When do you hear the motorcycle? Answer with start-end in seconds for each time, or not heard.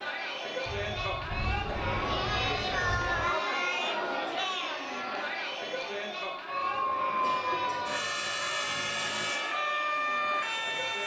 not heard.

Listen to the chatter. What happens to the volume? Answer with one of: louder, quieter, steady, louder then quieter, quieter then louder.
quieter.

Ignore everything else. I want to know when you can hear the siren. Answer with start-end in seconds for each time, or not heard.
6.5-11.0.